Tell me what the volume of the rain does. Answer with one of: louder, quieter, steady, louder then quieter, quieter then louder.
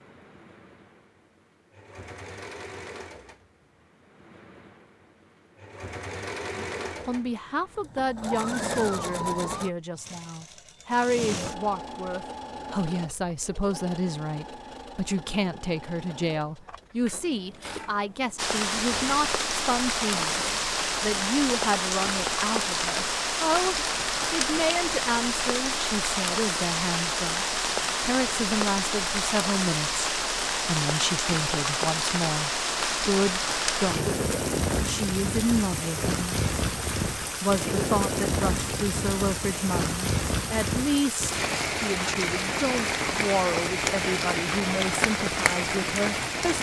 steady.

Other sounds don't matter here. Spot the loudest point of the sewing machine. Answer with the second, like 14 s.
9 s.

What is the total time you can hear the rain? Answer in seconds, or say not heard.
28 s.